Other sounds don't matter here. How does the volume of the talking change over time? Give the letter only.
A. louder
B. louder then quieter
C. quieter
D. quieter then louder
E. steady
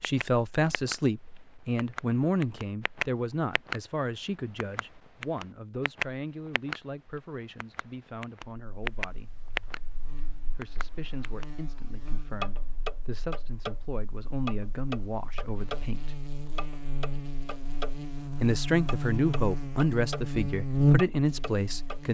D.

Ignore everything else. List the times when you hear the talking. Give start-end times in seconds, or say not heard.
0.0-9.4, 10.6-16.2, 18.4-22.0.